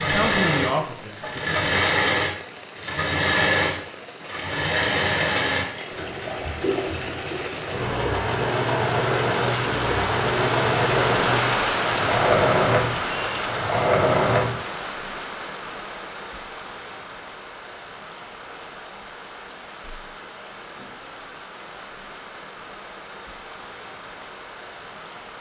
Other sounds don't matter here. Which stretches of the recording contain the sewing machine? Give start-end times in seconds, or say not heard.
0.0-14.6.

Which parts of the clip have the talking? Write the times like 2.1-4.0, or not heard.
0.0-1.6.